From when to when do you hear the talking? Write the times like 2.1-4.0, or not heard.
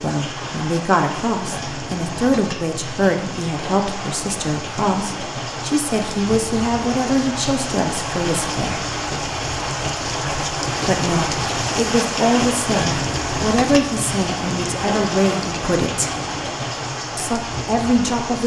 0.0-8.8, 10.8-16.1, 17.1-18.4.